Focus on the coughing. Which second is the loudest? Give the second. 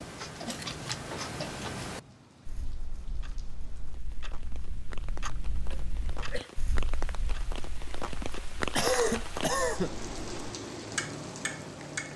9 s.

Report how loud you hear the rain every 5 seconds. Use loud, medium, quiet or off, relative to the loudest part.
quiet, loud, loud.